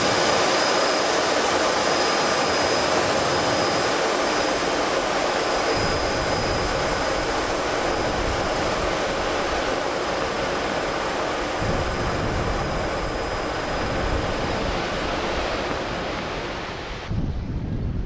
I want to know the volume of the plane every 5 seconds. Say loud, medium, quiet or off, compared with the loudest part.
loud, loud, medium, medium.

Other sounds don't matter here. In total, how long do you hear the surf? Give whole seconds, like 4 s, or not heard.
18 s.